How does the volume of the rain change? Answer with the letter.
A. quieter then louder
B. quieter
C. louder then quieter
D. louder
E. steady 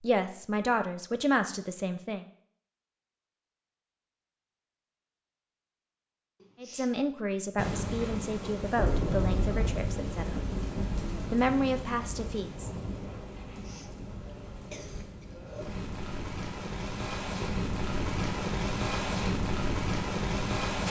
A.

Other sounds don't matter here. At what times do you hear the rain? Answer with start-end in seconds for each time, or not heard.
7.5-20.8.